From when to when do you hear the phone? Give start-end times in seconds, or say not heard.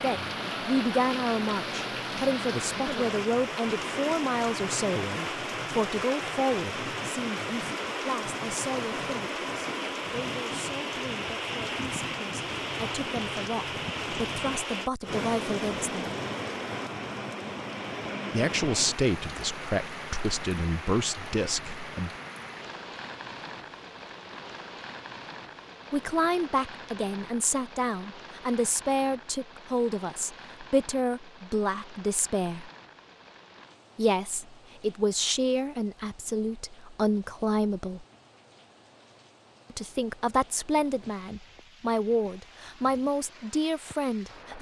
not heard.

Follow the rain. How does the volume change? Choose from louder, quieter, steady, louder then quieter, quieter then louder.
quieter.